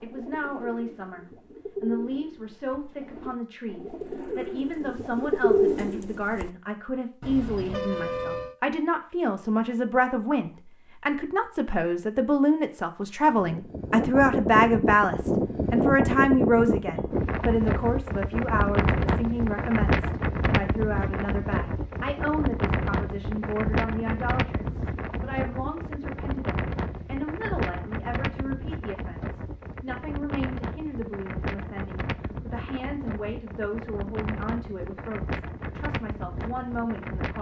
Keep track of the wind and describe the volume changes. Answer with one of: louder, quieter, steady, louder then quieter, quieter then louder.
quieter.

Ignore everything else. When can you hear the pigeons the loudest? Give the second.
6 s.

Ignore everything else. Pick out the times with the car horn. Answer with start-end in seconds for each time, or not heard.
7.2-8.6.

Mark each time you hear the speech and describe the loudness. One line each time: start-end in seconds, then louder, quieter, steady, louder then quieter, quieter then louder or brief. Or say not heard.
0.0-37.3 louder then quieter.